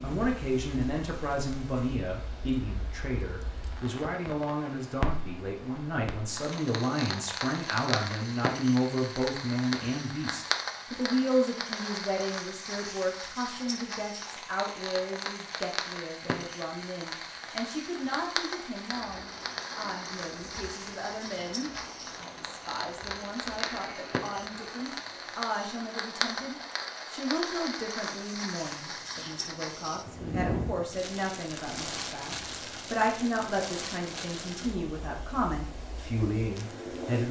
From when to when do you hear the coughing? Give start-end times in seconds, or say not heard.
23.6-24.3.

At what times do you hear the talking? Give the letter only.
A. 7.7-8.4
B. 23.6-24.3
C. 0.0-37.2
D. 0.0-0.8
C.